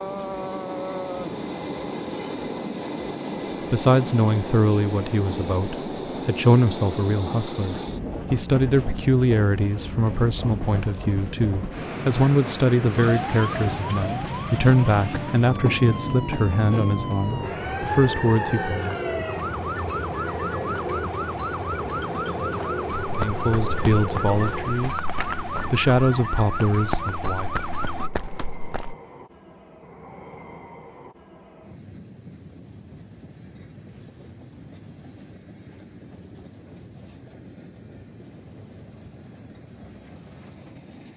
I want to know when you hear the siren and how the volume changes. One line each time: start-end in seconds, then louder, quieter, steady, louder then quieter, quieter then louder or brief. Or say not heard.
12.9-28.1 steady.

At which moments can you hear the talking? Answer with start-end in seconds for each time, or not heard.
3.7-18.9, 23.1-27.5.